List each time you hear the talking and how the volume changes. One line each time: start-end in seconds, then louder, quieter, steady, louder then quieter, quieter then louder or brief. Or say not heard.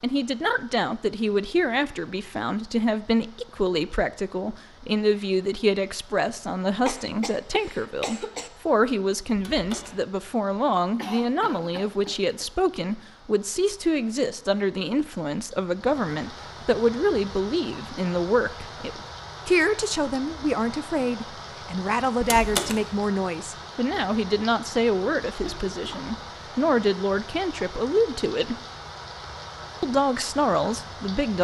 0.0-28.6 steady
29.8-31.3 brief.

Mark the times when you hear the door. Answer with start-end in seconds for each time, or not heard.
9.3-10.0, 22.2-22.9.